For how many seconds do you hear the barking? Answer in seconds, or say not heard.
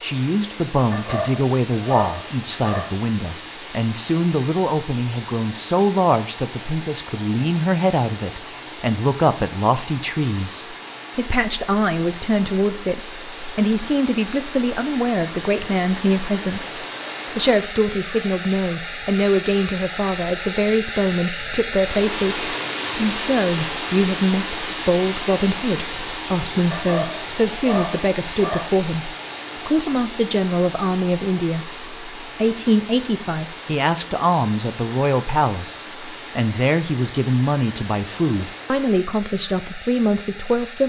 4 s.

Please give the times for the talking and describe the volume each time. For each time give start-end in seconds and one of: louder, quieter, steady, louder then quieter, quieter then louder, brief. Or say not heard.
0.0-40.8 steady.